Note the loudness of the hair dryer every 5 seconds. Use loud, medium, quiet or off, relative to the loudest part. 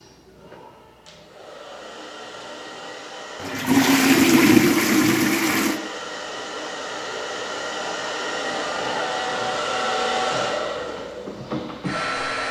quiet, loud, loud.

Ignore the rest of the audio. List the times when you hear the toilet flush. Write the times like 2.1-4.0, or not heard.
3.4-5.8.